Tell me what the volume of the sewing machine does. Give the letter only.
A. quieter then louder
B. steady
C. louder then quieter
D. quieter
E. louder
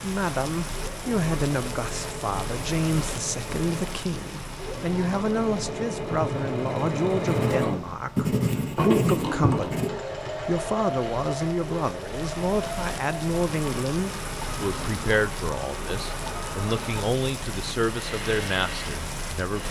C.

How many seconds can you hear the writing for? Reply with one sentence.
The writing can be heard for 3 seconds in total.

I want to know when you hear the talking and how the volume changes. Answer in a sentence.
The talking can be heard from 0.0 to 19.6 s, at a steady volume.